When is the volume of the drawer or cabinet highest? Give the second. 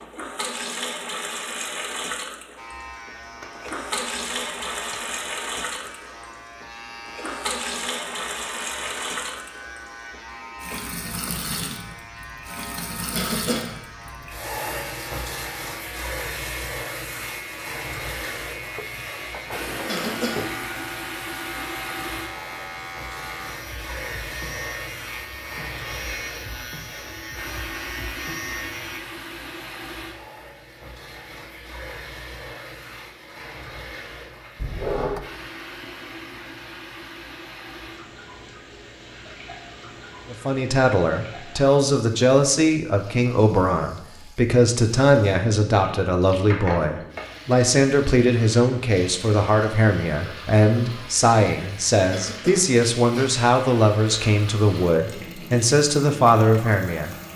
35 s.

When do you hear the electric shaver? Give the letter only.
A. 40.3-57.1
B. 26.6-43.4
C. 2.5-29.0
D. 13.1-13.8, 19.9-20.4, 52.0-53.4
C.